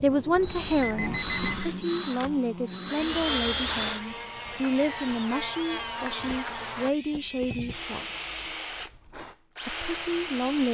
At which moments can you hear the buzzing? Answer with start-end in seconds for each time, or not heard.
0.0-6.9.